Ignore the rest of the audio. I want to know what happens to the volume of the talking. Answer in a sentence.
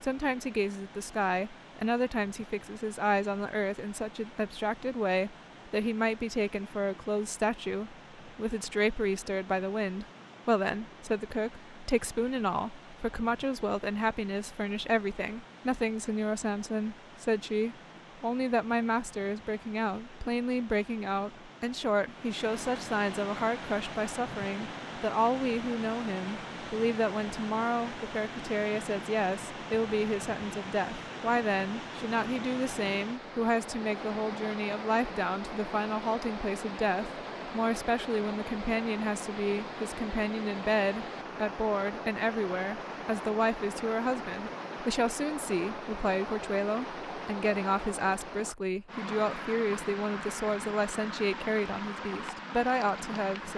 The loudness of the talking stays about the same.